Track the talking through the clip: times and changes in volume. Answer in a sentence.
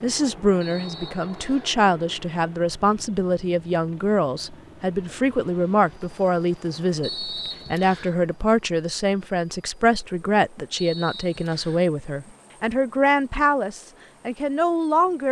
You can hear the talking from 0.0 to 15.2 s, at a steady volume.